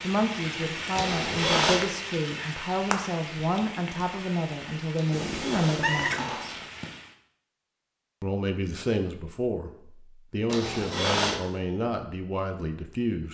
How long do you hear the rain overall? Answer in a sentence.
You can hear the rain for 7 seconds altogether.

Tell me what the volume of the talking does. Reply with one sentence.
The volume of the talking stays about the same.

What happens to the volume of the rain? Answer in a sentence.
The volume of the rain goes down.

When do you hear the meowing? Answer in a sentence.
The meowing can be heard from 5.1 to 6.3 s.